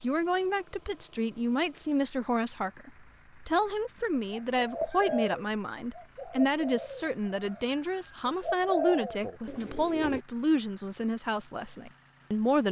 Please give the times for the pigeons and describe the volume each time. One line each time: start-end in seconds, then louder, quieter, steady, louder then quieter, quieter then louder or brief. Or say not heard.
4.3-10.2 quieter then louder.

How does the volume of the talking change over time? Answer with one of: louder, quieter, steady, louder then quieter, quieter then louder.
steady.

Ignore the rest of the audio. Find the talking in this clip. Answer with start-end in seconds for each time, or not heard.
0.0-12.6.